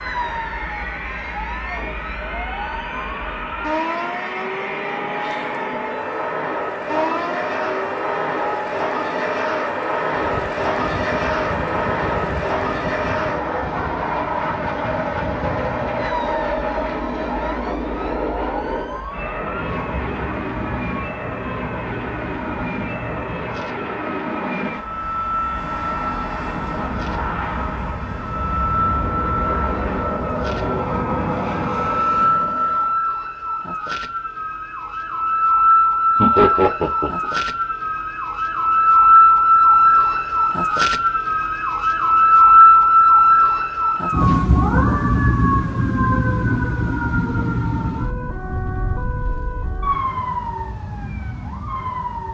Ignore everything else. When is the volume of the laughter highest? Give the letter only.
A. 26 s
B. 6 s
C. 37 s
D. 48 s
C.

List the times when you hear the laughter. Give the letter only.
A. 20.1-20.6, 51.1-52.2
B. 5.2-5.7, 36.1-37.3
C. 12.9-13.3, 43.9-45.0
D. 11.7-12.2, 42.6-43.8
B.